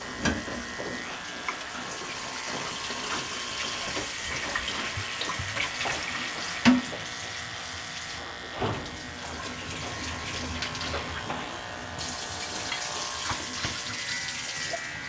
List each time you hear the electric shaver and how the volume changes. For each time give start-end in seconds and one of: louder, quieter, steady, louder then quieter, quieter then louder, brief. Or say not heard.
0.0-15.0 steady.